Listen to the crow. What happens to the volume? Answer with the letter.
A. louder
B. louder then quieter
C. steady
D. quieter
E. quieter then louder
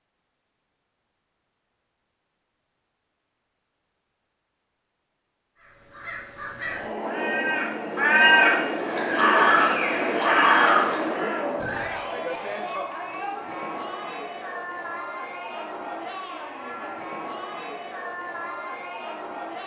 A.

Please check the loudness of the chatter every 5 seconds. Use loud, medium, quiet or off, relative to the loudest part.
off, loud, loud, medium.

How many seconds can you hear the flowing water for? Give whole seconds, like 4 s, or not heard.
not heard.